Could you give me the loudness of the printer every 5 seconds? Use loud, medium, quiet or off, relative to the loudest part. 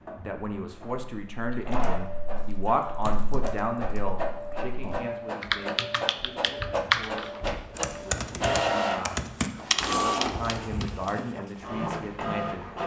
medium, loud, loud.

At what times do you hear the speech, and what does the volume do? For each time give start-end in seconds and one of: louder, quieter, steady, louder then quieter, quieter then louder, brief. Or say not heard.
0.2-12.7 quieter then louder.